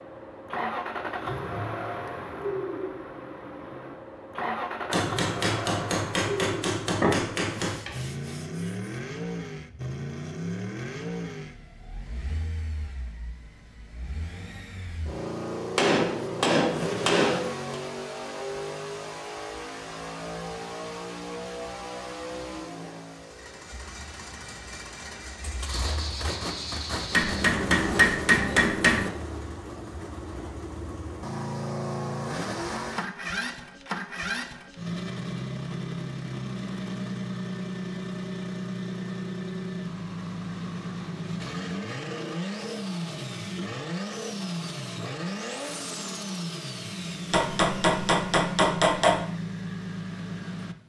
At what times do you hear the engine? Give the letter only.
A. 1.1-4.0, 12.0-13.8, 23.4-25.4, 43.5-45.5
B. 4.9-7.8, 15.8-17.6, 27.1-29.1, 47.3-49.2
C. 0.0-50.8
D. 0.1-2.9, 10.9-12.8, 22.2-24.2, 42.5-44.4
C.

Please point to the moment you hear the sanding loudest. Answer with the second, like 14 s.
7 s.